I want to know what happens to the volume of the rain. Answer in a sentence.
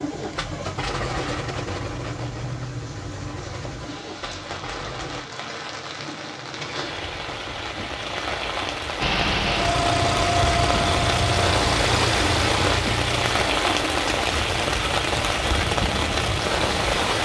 The loudness of the rain goes up.